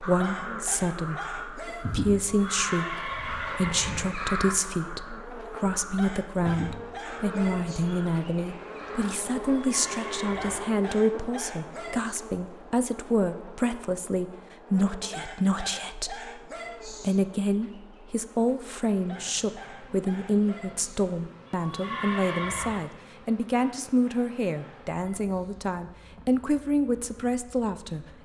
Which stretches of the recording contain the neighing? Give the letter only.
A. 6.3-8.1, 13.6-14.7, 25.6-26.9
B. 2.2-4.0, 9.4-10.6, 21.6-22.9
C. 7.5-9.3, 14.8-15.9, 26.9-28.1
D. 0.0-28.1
B.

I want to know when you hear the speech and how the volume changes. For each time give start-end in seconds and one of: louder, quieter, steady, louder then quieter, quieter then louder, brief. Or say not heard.
0.0-28.1 steady.